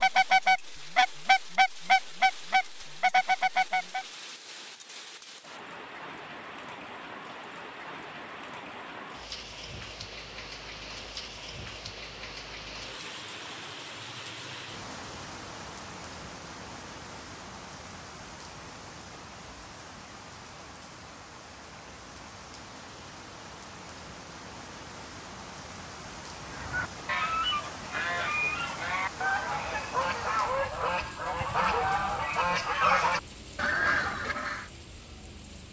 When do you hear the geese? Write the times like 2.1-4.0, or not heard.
0.0-4.0, 26.5-34.6.